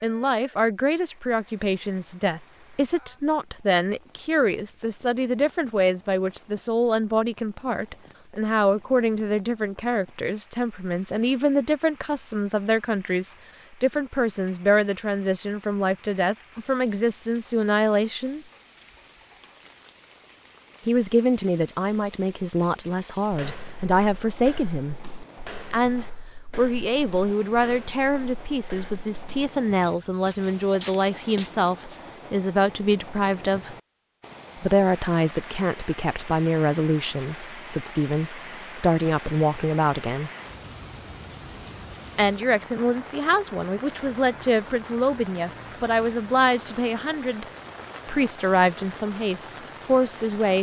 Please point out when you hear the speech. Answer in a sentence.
You can hear the speech from 0.0 to 18.4 s, from 20.9 to 24.9 s, from 25.7 to 33.8 s, from 34.5 to 40.3 s, from 42.1 to 47.5 s and from 48.0 to 50.5 s.